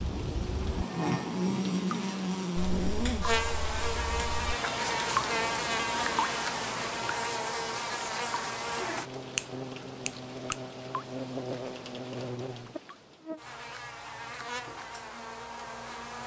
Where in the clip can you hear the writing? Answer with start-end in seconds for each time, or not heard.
not heard.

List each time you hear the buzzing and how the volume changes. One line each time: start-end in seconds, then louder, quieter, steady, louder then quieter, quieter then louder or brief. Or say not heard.
0.0-16.2 quieter.